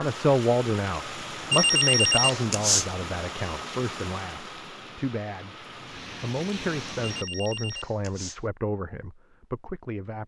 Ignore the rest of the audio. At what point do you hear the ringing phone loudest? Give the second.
2 s.